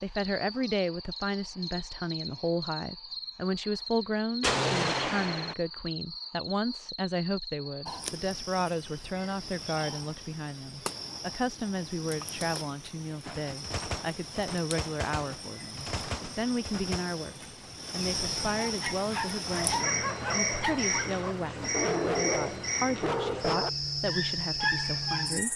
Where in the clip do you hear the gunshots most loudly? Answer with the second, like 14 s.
5 s.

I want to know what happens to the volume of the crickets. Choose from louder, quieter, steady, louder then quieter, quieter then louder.
louder.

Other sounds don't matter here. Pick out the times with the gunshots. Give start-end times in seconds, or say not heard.
4.4-5.5, 13.2-17.1.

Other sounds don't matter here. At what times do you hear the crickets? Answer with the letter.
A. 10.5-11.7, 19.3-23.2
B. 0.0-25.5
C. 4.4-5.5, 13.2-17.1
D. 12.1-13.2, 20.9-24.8
B.